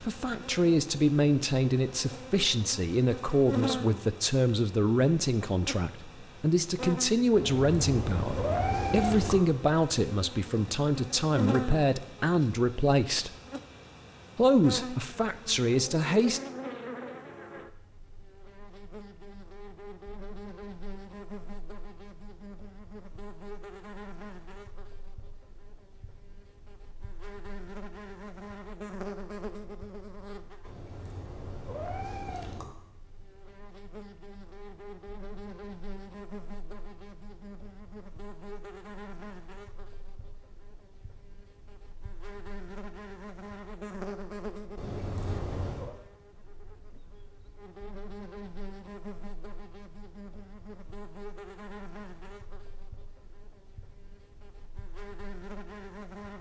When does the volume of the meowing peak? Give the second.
9 s.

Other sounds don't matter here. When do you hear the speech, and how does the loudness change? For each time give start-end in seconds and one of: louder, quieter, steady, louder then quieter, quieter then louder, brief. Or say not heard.
0.0-13.3 steady
14.3-16.4 brief.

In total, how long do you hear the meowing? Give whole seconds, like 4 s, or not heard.
5 s.